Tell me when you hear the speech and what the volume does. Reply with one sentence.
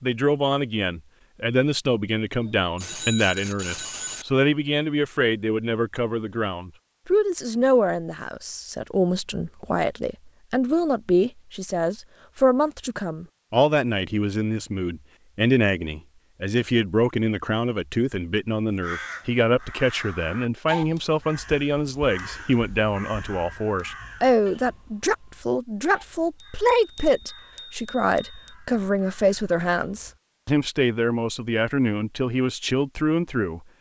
The speech can be heard from 0.0 to 33.6 s, at a steady volume.